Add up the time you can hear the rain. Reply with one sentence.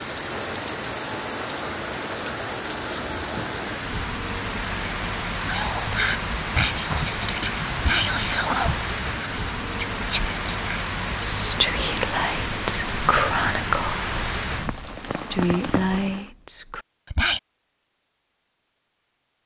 The rain can be heard for 16 seconds in total.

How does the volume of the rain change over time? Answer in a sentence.
The volume of the rain stays about the same.